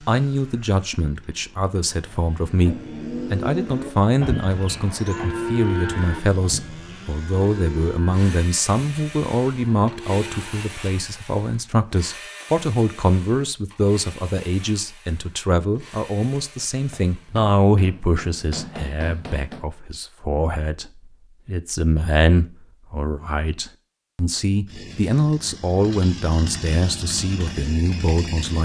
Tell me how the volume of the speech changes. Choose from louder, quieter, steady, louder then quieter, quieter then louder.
steady.